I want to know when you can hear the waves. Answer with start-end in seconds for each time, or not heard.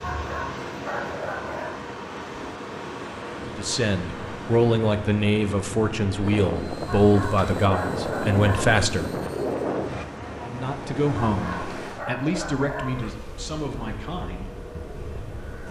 0.0-15.6.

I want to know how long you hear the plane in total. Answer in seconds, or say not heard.
4 s.